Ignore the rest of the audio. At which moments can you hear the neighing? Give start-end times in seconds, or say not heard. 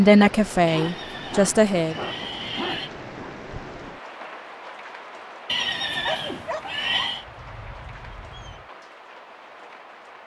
0.7-2.9, 5.5-7.2.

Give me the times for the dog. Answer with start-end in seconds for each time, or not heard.
0.7-3.4, 6.0-8.7.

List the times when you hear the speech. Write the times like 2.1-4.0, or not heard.
0.0-1.9.